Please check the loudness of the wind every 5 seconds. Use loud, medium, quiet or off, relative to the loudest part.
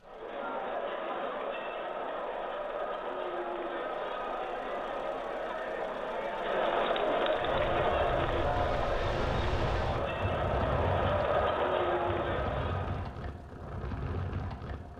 off, loud, loud.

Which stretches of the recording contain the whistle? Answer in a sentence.
You can't hear the whistle here.